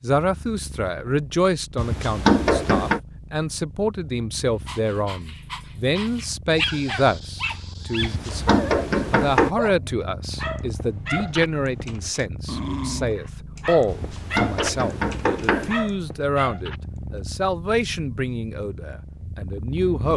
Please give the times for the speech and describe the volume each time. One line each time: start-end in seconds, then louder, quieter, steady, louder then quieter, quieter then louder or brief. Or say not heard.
0.0-20.1 steady.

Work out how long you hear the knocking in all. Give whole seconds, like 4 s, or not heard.
5 s.